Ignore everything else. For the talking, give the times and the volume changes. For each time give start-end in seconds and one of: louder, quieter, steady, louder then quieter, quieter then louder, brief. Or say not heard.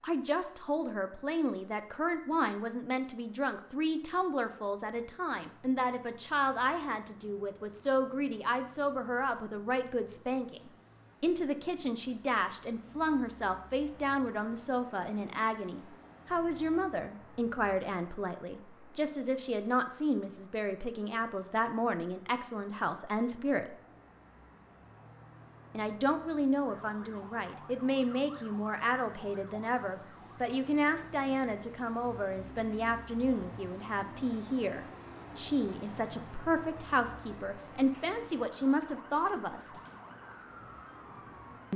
0.0-23.8 steady
25.7-39.8 steady.